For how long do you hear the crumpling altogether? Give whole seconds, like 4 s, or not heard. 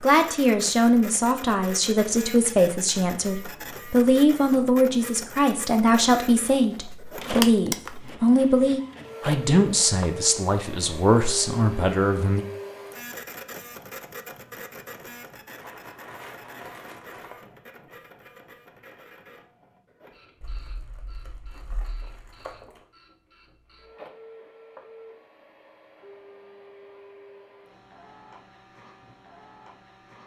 5 s.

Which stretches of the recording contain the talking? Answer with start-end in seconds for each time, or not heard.
0.0-12.4.